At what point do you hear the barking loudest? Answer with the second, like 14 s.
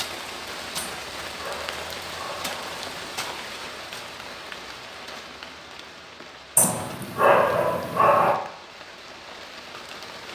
7 s.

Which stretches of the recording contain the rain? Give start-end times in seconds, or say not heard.
0.0-10.3.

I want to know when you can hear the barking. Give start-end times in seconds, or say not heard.
0.8-3.4, 6.5-8.3.